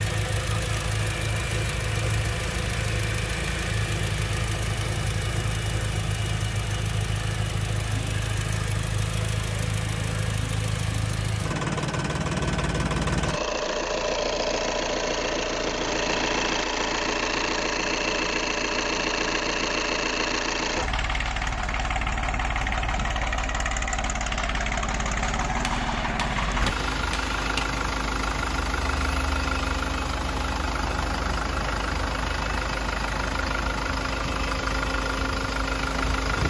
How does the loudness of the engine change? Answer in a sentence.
The loudness of the engine stays about the same.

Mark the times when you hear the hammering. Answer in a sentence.
You can hear the hammering from 25.6 to 27.7 s.